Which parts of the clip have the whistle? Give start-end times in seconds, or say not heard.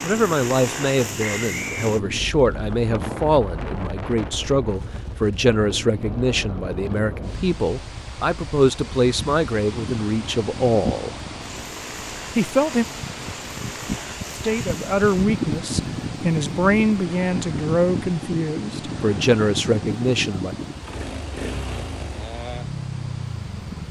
1.2-1.9.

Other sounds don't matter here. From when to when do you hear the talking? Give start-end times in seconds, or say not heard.
0.0-11.2, 12.3-12.8, 14.3-20.6.